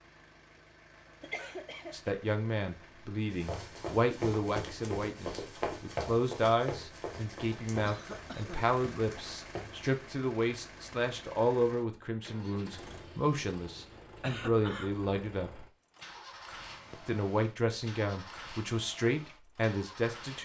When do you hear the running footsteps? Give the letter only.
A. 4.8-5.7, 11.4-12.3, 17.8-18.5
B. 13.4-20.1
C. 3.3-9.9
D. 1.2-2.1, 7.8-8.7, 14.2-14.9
C.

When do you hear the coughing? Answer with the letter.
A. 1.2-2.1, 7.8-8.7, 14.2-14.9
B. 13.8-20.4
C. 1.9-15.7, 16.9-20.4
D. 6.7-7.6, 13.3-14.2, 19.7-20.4
A.